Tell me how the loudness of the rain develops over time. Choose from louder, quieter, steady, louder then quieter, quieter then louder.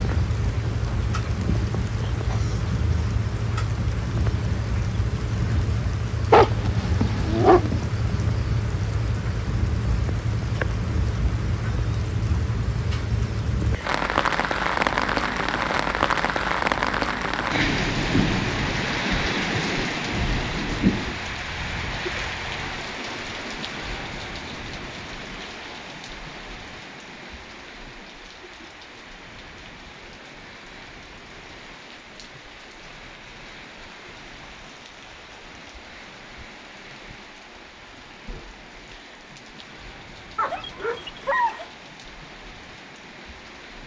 quieter.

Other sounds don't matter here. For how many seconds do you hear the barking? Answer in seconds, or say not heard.
3 s.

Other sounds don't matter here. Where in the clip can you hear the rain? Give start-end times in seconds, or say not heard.
0.0-43.8.